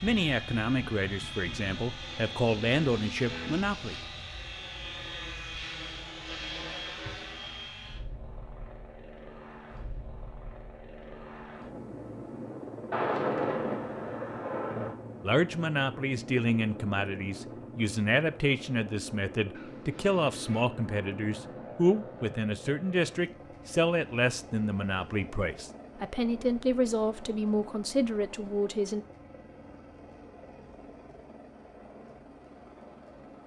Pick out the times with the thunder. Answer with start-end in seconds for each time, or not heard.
12.9-14.9, 19.5-22.4.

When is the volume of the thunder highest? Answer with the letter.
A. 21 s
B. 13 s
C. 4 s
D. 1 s
B.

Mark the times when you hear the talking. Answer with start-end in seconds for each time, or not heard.
0.0-4.0, 15.2-29.1.